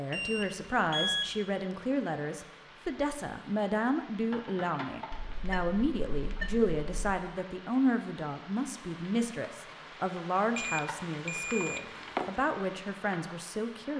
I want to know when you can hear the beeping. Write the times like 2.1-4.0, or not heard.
0.1-1.4, 5.1-7.2, 10.6-12.3.